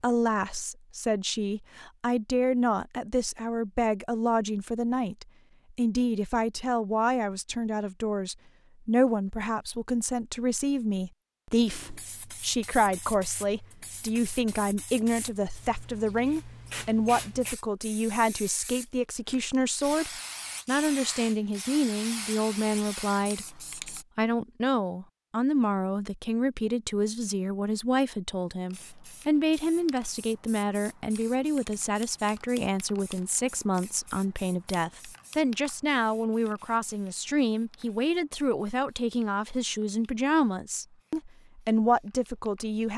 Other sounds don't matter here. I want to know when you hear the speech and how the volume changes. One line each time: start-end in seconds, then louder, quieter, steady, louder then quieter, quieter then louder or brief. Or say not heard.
0.0-42.9 steady.